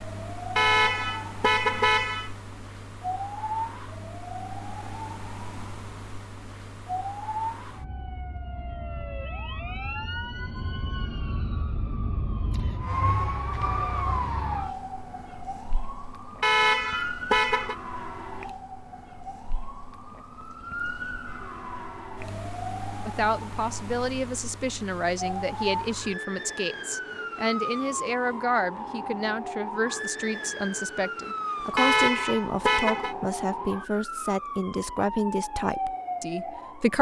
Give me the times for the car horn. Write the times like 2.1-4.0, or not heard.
0.6-2.3, 16.4-17.8, 31.8-33.1.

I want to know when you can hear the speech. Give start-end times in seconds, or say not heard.
23.1-36.9.